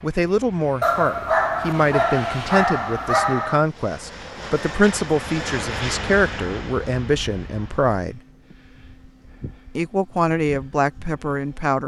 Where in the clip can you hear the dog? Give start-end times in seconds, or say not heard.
0.8-3.6.